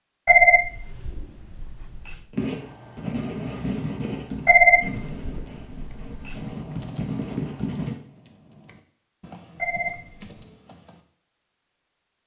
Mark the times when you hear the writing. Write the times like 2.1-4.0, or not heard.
2.3-8.0.